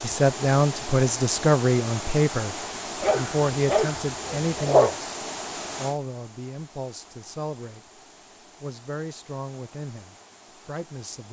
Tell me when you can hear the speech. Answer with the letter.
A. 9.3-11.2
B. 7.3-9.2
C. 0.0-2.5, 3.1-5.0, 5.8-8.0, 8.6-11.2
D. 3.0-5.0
C.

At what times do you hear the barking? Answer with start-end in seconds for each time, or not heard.
3.0-5.0.